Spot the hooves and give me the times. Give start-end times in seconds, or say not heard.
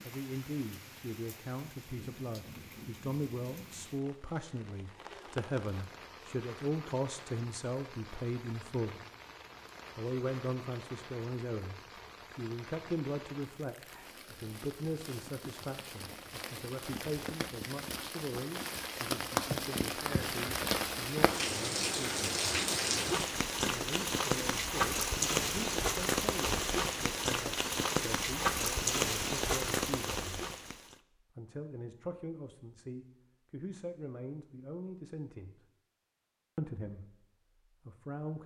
not heard.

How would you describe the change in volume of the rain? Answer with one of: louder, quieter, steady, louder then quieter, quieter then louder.
louder.